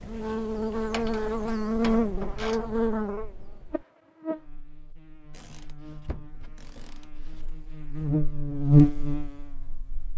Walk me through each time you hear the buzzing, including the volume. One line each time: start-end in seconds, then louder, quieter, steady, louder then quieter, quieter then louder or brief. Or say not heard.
0.0-10.1 quieter then louder.